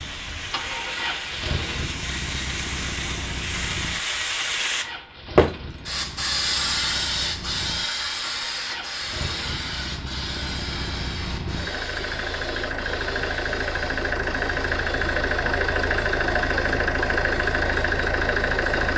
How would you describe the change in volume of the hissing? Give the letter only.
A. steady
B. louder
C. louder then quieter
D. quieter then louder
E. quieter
C.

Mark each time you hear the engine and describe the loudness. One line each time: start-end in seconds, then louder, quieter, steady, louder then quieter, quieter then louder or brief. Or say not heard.
0.0-18.9 quieter then louder.